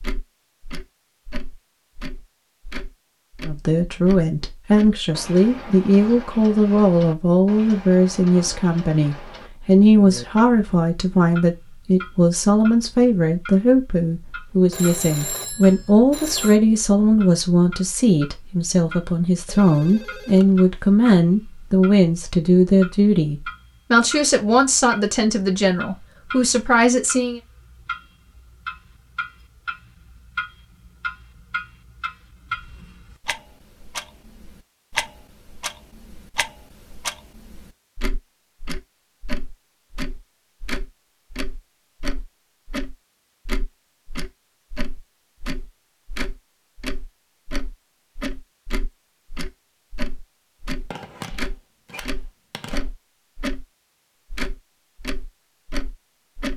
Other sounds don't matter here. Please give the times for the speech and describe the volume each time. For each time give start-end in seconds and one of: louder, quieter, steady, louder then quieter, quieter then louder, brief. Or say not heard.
3.4-27.4 steady.